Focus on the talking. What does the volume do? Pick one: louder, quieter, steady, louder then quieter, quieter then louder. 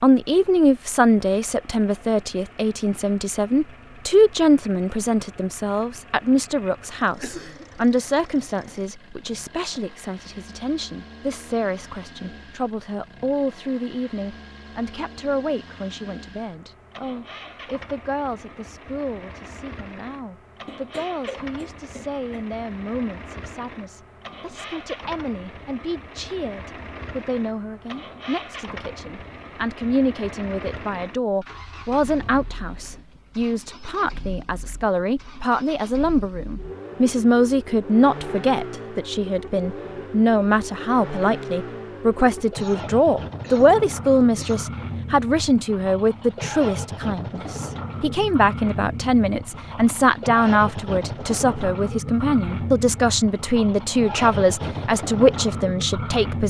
quieter then louder.